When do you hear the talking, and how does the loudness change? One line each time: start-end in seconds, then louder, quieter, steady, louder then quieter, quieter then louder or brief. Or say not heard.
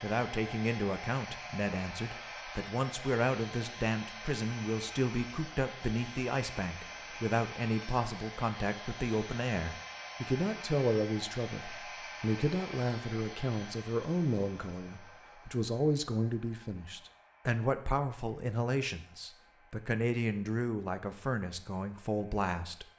0.0-22.9 steady.